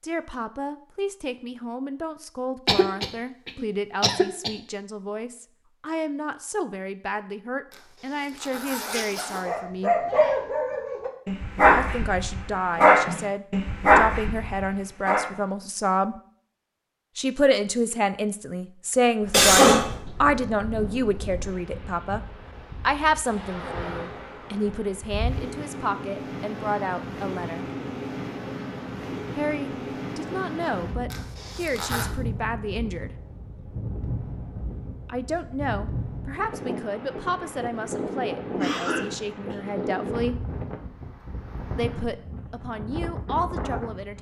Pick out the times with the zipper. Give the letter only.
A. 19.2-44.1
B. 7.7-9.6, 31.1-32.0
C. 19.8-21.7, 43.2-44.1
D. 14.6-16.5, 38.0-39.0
B.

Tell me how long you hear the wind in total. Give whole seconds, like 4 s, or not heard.
25 s.